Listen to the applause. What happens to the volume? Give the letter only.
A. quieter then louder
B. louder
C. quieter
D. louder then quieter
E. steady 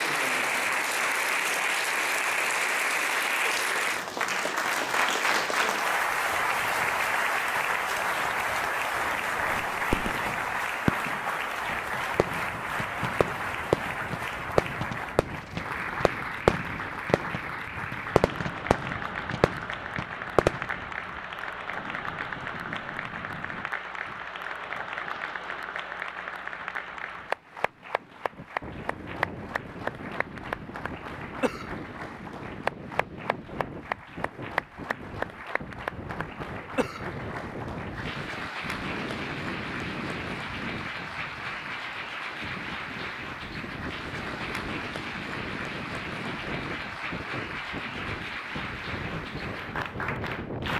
C.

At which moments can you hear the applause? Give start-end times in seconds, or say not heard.
0.0-50.7.